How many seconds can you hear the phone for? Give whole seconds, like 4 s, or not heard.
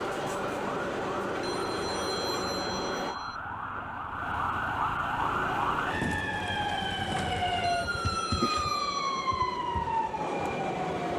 4 s.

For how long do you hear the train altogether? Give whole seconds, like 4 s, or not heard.
9 s.